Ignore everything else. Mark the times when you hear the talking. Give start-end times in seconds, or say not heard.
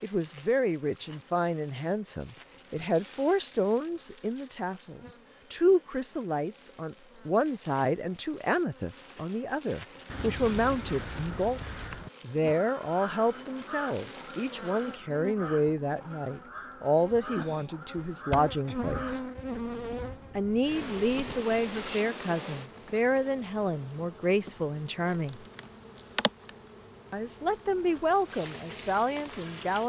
0.0-11.6, 12.2-19.2, 20.4-25.4, 27.1-29.8.